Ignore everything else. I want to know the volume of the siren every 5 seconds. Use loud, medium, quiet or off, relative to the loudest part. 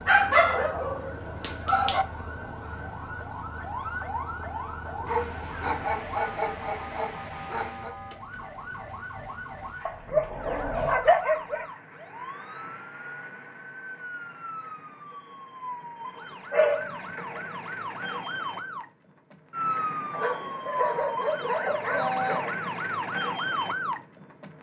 medium, medium, medium, loud, loud.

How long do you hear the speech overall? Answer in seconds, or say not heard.
not heard.